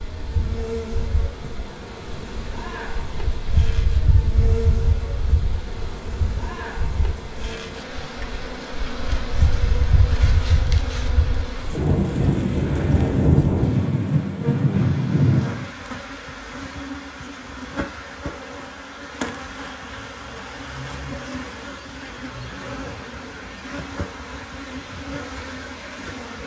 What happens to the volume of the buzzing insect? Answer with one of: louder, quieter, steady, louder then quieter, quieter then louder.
steady.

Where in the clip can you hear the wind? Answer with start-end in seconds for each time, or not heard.
0.0-15.7.